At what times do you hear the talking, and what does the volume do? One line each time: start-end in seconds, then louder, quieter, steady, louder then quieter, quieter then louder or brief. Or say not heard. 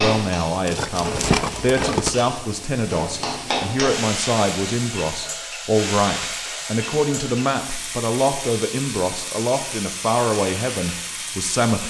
0.0-11.8 steady.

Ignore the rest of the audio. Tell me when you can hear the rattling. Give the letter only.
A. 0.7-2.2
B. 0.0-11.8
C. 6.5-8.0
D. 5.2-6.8
A.